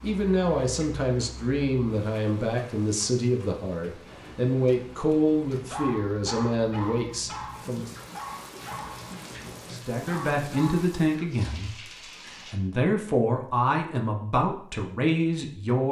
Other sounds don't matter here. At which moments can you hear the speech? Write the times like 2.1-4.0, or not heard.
0.0-7.9, 9.7-15.8.